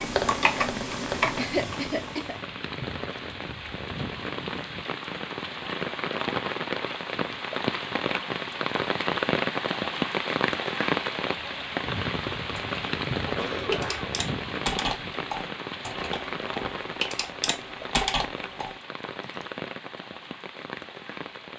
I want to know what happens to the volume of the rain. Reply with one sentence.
The volume of the rain goes up, then down.